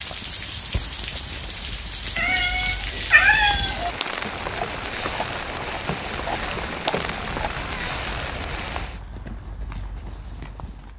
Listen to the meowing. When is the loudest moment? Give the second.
3 s.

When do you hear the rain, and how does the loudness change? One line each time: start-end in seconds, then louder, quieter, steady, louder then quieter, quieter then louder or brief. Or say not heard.
0.0-9.0 steady.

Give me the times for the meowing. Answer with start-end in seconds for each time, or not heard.
2.1-4.0, 6.3-8.1.